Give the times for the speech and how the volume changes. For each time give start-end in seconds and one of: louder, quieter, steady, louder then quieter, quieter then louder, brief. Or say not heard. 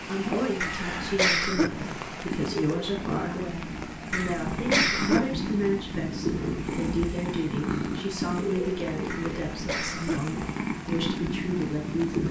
0.1-12.2 steady.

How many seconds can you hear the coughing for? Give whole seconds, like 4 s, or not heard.
3 s.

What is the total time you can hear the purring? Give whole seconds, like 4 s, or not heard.
12 s.